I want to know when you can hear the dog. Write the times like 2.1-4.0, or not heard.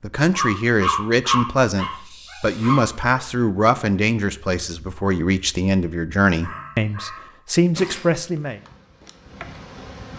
0.3-3.2, 6.4-8.1.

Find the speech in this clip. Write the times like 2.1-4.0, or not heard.
0.0-8.6.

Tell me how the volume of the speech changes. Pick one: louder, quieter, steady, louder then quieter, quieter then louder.
steady.